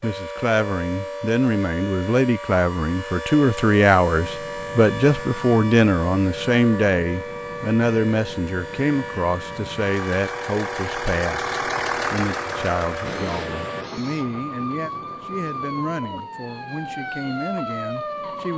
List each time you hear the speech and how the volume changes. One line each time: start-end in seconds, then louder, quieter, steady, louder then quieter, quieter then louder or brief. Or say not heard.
0.0-18.5 quieter.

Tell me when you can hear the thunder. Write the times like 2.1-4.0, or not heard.
13.1-16.2.